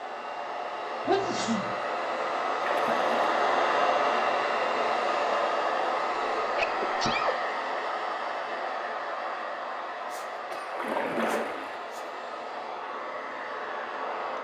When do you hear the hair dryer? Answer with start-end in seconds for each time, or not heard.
0.0-14.3.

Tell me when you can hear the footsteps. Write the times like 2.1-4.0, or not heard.
not heard.